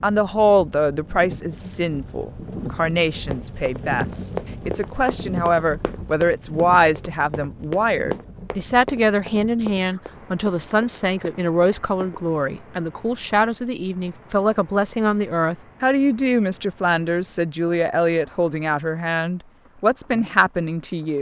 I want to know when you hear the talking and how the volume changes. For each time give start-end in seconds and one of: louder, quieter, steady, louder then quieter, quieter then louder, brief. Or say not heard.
0.0-21.1 steady.